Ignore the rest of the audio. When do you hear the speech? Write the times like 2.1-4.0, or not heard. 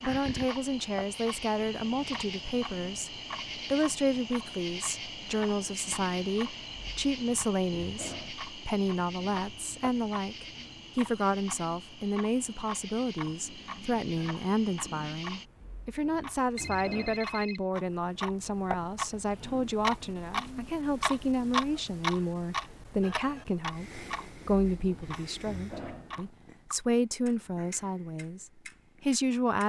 0.0-29.6.